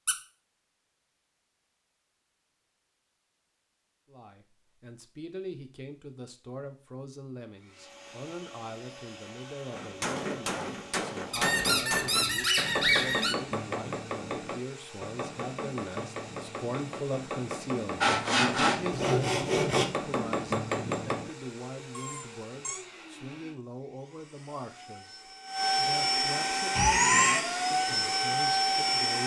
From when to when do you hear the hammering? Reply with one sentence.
The hammering can be heard from 9.7 to 21.4 s.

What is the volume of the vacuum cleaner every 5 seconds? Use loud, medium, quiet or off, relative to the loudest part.
off, quiet, quiet, quiet, quiet, loud.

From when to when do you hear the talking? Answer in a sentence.
You can hear the talking from 4.1 to 29.2 s.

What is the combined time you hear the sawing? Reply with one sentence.
The sawing can be heard for 2 seconds in total.